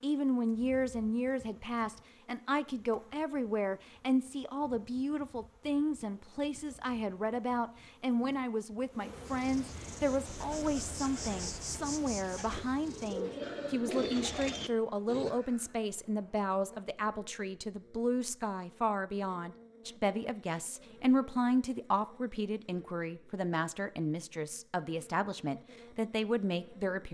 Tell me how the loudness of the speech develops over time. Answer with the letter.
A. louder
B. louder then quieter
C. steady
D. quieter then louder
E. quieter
C.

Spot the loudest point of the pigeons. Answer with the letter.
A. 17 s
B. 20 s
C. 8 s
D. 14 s
D.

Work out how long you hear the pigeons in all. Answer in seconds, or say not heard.
5 s.